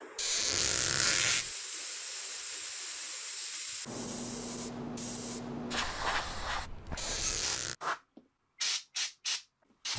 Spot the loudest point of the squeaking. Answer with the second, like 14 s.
1 s.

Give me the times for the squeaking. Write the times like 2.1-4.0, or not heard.
0.1-1.5, 7.0-7.8.